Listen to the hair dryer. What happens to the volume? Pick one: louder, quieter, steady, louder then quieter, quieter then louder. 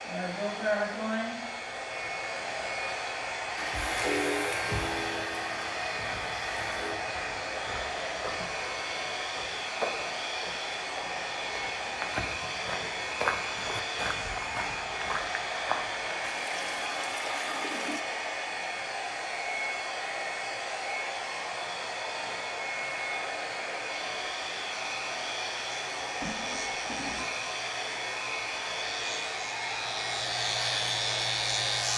steady.